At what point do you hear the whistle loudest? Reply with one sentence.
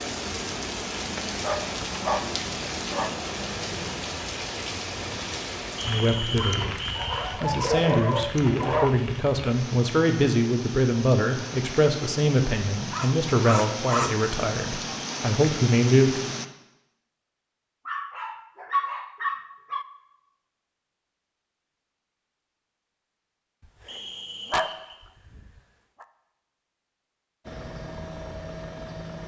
The volume of the whistle peaks at 6 seconds.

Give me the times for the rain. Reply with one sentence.
You can hear the rain from 0.0 to 16.4 s.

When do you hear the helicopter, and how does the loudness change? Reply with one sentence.
You can hear the helicopter from 0.0 to 4.0 s, at a steady volume; and briefly from 27.4 to 29.2 s.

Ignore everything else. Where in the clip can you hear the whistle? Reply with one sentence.
The whistle can be heard from 5.8 to 7.2 s and from 23.9 to 25.0 s.